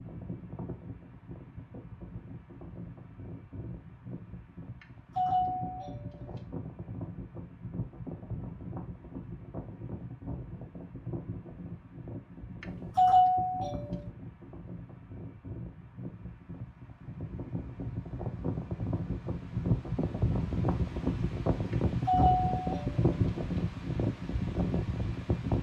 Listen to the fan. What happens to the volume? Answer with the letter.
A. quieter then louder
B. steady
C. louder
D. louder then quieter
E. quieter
C.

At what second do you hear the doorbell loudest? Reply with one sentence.
The loudest moment of the doorbell is at 13 seconds.